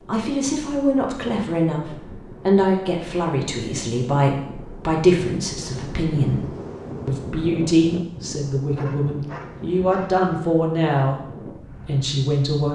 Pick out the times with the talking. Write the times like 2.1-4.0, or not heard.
0.1-6.5, 7.0-11.2, 11.8-12.7.